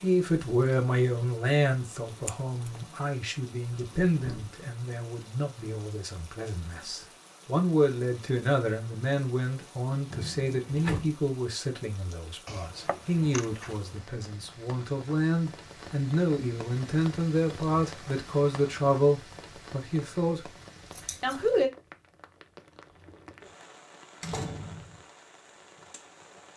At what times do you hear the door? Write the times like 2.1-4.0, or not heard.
3.6-4.5, 10.1-11.2, 24.2-25.0.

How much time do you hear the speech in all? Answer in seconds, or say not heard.
21 s.